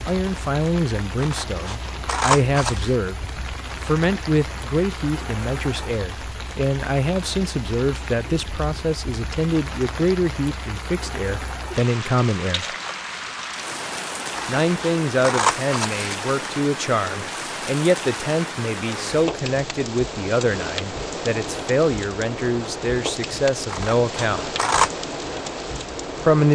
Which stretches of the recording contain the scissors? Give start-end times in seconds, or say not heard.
1.2-2.9, 14.3-16.1, 23.7-24.9.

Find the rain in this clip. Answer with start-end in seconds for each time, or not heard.
0.0-26.5.